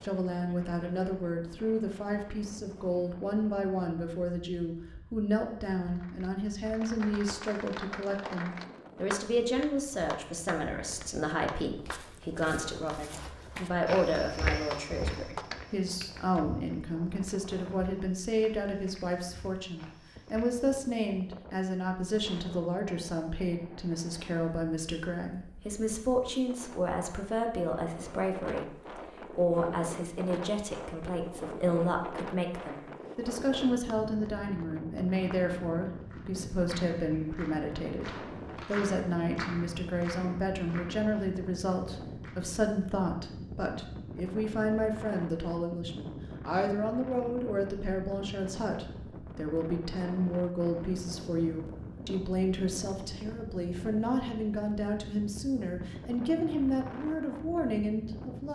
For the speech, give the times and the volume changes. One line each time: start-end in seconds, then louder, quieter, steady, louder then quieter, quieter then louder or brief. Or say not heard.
0.0-58.5 steady.